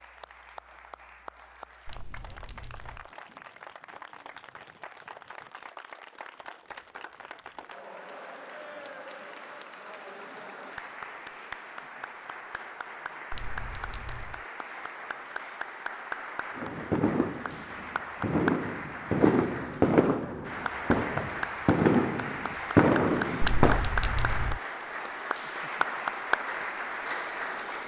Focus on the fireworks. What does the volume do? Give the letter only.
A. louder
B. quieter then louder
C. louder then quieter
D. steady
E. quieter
A.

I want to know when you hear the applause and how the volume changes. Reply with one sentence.
You can hear the applause from 0.0 to 27.8 s, getting louder.